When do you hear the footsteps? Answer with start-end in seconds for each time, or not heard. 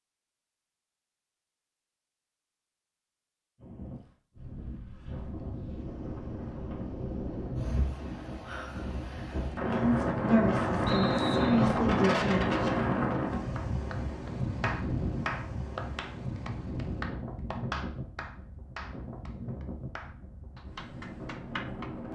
not heard.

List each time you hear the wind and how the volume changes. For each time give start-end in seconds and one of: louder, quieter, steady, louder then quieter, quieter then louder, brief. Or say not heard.
3.5-22.1 louder then quieter.